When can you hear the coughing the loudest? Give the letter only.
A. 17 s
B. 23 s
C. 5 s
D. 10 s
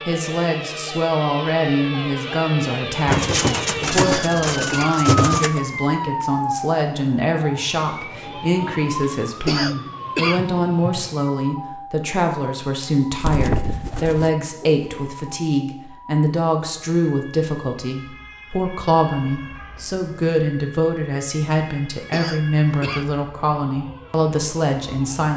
D.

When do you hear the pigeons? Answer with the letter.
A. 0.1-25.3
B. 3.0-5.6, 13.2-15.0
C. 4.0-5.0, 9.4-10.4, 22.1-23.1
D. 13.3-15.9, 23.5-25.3
B.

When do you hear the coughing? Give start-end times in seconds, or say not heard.
4.0-5.0, 9.4-10.4, 22.1-23.1.